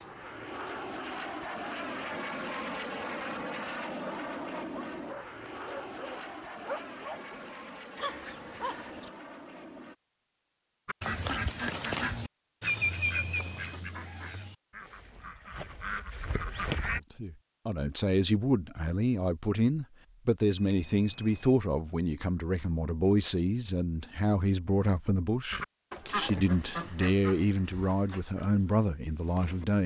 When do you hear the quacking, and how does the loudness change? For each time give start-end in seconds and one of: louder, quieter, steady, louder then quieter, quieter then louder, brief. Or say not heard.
10.8-17.0 quieter then louder
25.5-29.6 quieter.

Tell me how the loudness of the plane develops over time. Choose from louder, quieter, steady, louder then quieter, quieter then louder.
quieter.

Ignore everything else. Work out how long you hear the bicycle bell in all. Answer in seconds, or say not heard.
3 s.